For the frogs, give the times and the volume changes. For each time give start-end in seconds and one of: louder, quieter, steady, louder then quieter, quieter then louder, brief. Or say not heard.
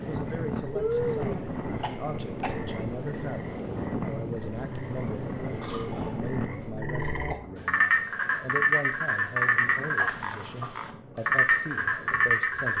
0.0-12.7 louder.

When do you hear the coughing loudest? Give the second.
1 s.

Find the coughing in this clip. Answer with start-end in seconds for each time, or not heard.
0.8-2.5, 5.6-6.2, 9.9-10.7.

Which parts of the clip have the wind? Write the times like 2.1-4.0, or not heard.
0.0-12.7.